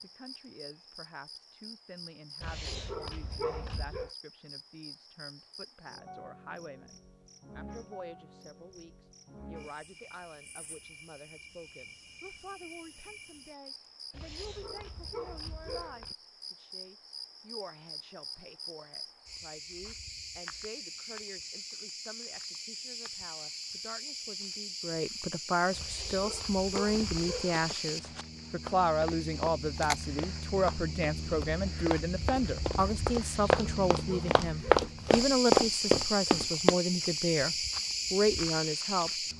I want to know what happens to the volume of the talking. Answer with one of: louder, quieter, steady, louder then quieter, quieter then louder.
louder.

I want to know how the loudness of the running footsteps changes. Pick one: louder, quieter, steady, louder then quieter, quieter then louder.
louder.